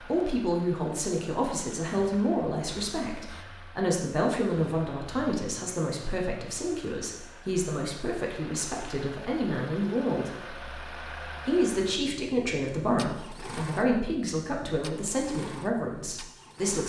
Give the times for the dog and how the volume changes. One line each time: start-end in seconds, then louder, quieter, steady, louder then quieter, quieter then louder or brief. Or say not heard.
not heard.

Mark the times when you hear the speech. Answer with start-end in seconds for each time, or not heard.
0.0-10.6, 11.4-16.8.